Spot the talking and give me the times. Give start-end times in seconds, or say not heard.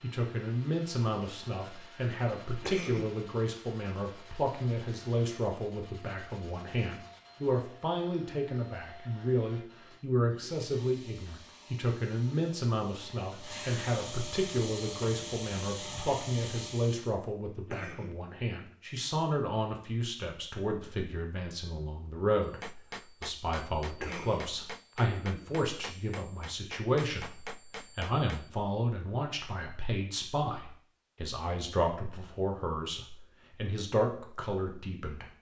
0.0-35.2.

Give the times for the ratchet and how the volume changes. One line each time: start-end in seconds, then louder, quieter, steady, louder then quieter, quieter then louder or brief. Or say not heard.
not heard.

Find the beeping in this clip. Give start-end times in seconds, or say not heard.
not heard.